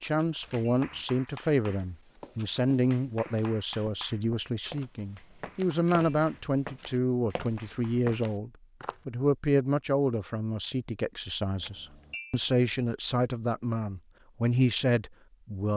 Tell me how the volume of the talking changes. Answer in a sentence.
The volume of the talking stays about the same.